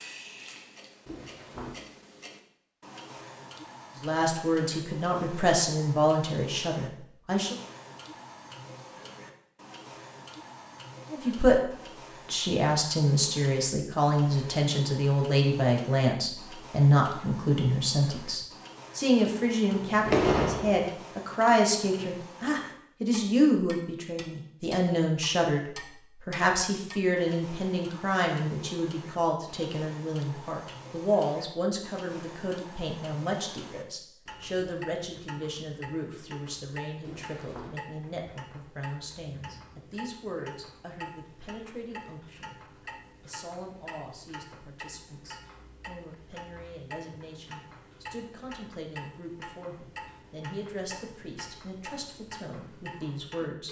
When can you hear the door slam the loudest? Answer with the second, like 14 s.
20 s.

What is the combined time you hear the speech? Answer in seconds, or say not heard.
45 s.